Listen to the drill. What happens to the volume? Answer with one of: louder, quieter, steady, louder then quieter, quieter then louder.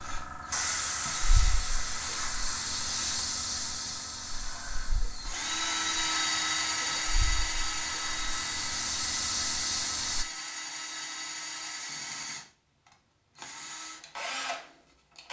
louder then quieter.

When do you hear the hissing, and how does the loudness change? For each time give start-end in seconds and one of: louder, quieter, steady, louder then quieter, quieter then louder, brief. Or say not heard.
0.0-10.2 quieter then louder.